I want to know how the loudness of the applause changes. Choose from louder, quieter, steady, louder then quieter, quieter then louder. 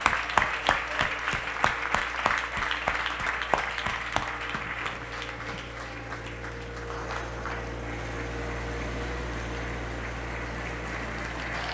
quieter.